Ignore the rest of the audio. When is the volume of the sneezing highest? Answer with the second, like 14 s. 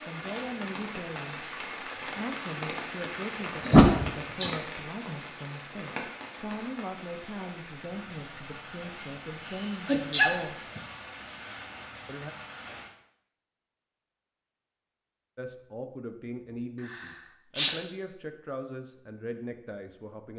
4 s.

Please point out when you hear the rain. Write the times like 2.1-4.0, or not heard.
0.0-12.9.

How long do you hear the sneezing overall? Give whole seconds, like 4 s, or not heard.
3 s.